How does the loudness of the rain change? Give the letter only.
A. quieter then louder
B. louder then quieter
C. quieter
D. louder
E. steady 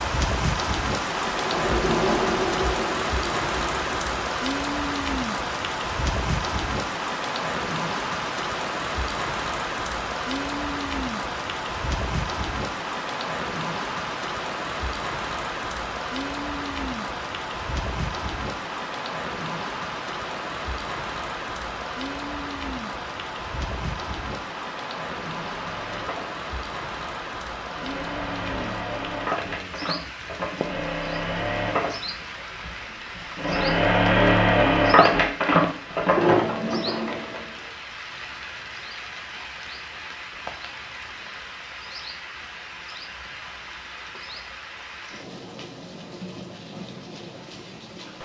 C.